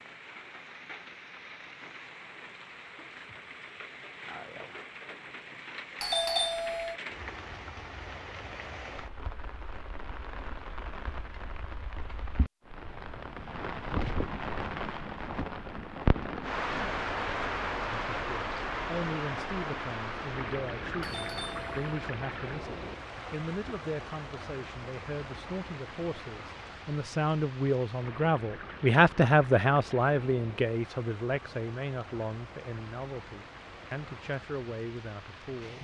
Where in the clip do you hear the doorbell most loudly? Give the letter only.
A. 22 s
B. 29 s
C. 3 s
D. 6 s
D.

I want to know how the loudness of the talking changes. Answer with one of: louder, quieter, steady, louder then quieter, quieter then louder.
louder then quieter.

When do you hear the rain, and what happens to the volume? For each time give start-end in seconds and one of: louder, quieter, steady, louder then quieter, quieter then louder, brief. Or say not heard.
0.0-35.8 louder then quieter.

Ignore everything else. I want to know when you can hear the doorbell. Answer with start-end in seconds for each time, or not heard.
6.0-7.0, 21.0-22.1.